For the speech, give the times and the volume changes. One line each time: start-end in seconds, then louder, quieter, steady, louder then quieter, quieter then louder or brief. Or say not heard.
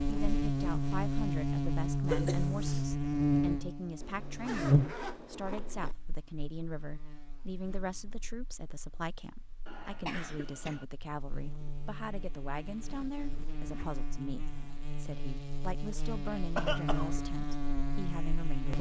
0.1-18.7 steady.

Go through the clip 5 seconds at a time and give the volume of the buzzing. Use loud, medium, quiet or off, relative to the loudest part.
loud, quiet, quiet, medium.